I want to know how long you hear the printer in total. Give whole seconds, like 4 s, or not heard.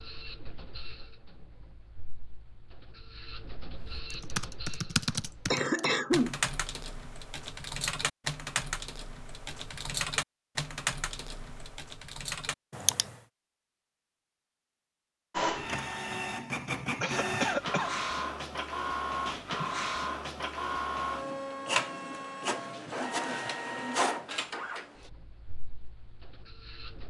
17 s.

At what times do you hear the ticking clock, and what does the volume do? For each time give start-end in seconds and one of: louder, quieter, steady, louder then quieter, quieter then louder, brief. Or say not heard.
not heard.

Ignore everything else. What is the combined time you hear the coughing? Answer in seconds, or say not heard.
2 s.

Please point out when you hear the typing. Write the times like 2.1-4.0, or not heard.
3.8-13.2.